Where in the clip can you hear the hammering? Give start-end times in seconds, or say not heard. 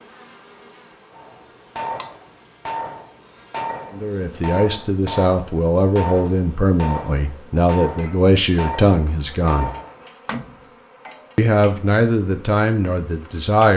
1.1-10.7.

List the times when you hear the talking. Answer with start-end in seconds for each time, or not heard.
4.0-9.8, 11.3-13.7.